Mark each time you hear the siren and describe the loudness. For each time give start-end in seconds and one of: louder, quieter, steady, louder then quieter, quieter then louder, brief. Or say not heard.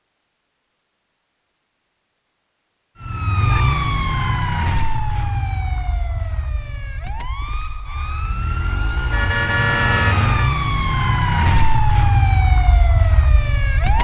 3.0-13.9 quieter then louder.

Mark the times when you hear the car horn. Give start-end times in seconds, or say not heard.
9.1-10.5.